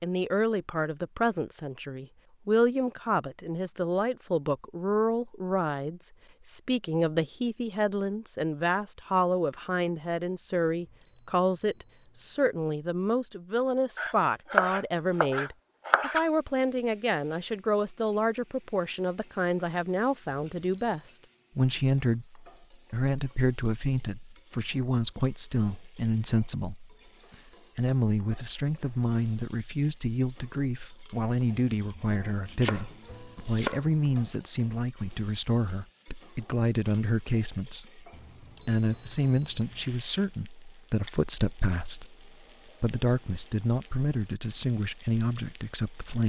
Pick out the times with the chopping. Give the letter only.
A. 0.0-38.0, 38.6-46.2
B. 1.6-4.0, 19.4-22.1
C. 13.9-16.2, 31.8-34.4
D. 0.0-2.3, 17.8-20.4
C.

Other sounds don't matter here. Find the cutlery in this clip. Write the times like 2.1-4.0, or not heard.
not heard.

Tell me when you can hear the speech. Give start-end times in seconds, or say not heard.
0.0-38.0, 38.6-46.2.